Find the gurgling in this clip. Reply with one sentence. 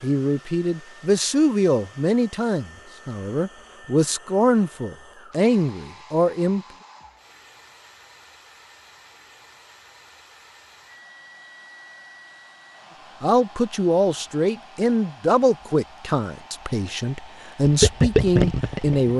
You can hear the gurgling from 17.6 to 19.1 s.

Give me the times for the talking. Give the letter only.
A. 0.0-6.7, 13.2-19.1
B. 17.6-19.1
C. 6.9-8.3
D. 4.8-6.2
A.